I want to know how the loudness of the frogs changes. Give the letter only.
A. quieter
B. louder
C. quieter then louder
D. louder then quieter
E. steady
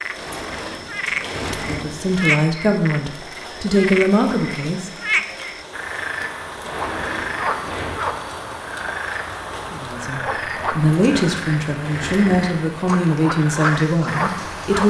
E.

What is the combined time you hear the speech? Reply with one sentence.
The speech can be heard for 8 seconds in total.